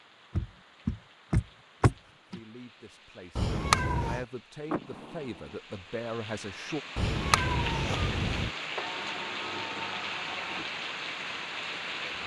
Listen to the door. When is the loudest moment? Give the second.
2 s.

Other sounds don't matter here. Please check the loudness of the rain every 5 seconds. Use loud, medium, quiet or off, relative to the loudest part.
quiet, loud, loud.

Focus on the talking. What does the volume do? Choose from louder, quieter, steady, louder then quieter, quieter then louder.
louder.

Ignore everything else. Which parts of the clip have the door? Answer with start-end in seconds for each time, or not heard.
0.3-2.4, 4.7-5.5, 8.8-10.7.